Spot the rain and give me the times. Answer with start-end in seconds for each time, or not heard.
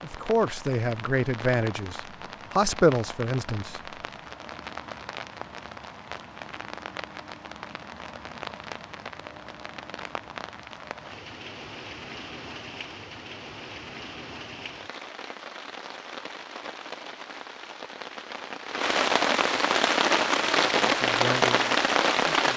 0.0-22.5.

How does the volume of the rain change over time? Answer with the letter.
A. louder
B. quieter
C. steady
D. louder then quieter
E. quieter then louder
A.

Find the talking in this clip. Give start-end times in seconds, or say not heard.
0.0-4.0, 20.9-22.5.